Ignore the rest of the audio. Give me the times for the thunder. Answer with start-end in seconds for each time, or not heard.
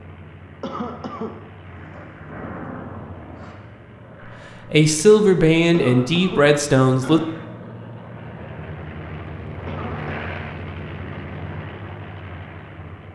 1.6-3.5.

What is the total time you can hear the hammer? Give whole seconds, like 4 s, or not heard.
not heard.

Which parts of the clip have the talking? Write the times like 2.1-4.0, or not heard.
4.7-7.2.